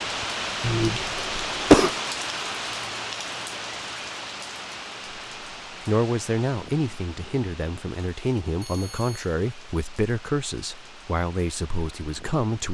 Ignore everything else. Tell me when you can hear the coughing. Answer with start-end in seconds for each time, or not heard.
0.6-1.9.